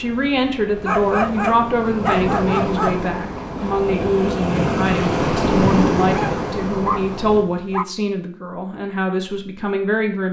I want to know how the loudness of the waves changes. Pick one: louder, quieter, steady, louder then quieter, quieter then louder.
louder.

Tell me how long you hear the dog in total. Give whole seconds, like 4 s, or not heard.
4 s.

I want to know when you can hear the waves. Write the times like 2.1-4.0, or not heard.
0.0-7.5.